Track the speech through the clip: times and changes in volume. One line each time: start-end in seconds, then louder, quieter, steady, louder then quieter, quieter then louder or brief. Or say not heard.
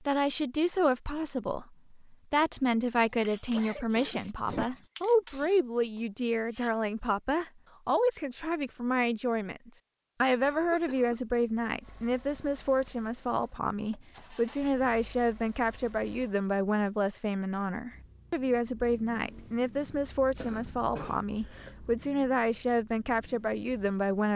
0.0-24.3 steady.